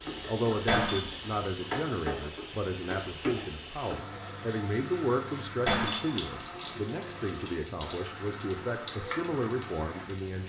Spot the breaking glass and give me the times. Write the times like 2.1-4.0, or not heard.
0.7-1.3, 5.7-6.2.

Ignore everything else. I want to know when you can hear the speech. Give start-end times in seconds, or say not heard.
0.2-10.4.